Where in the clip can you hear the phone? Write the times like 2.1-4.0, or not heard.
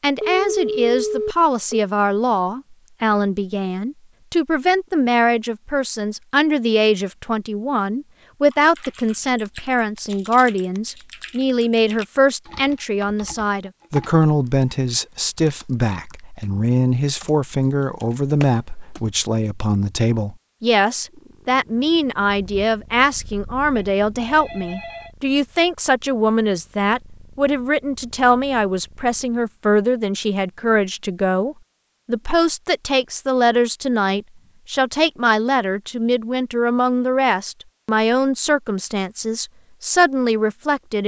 0.2-1.9, 23.8-25.1.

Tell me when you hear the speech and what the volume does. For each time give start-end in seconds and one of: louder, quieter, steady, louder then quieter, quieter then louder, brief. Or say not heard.
0.0-41.0 steady.